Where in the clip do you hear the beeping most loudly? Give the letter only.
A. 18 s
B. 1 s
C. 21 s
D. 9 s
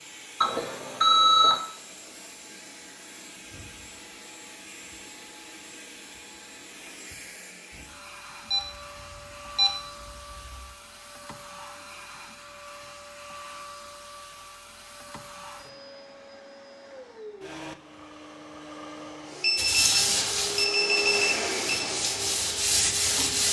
B.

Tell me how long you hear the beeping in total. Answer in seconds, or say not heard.
6 s.